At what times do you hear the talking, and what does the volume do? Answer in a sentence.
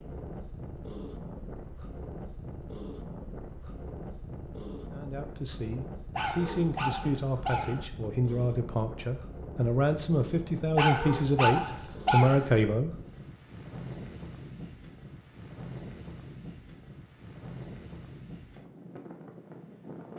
You can hear the talking from 4.9 to 12.9 s, getting louder.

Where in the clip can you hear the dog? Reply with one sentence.
The dog can be heard from 6.2 to 7.8 s and from 10.8 to 12.5 s.